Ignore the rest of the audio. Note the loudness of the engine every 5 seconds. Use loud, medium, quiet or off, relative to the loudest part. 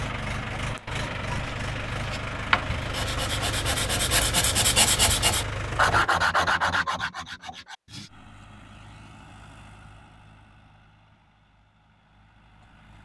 loud, medium, quiet.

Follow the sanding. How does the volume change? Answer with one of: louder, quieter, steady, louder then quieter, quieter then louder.
louder then quieter.